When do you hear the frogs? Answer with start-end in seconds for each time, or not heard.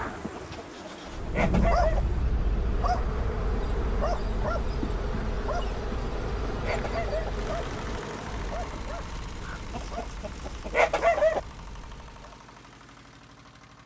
not heard.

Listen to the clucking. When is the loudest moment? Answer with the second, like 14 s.
11 s.